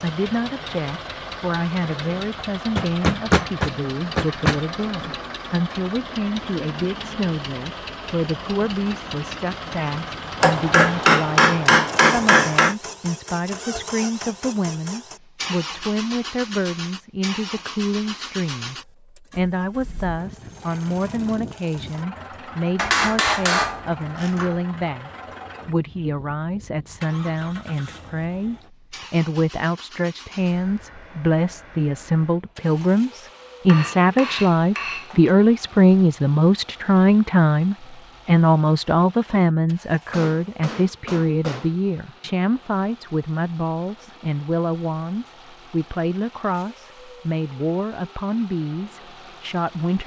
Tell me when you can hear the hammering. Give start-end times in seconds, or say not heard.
2.8-4.6, 10.4-12.8, 22.8-24.6, 33.6-35.4, 40.1-41.8.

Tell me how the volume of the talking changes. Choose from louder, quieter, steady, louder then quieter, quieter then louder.
louder then quieter.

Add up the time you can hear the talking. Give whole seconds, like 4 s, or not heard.
50 s.